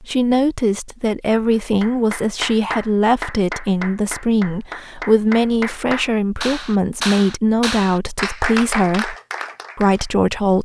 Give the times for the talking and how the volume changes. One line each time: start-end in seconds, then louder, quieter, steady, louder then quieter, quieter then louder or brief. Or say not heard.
0.0-9.2 steady
9.8-10.6 brief.